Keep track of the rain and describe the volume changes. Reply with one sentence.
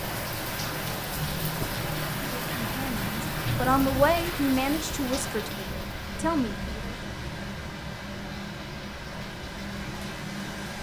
The loudness of the rain goes down.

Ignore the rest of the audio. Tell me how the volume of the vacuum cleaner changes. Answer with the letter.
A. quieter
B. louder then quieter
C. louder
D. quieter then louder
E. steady
E.